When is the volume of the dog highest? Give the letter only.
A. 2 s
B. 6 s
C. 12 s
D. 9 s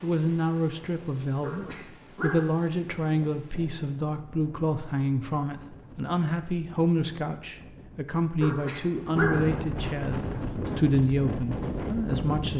D.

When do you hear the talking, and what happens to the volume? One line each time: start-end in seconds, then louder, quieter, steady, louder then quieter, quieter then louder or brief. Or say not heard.
0.0-12.5 steady.